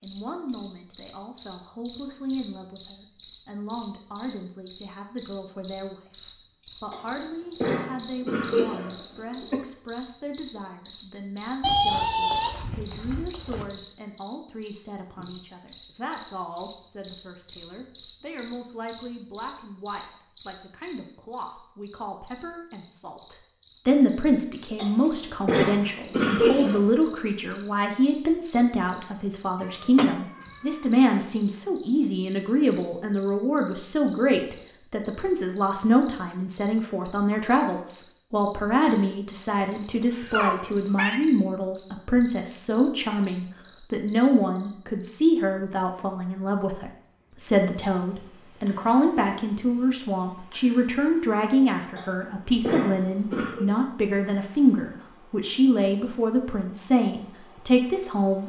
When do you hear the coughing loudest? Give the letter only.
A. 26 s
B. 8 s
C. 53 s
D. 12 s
A.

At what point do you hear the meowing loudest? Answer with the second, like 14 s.
12 s.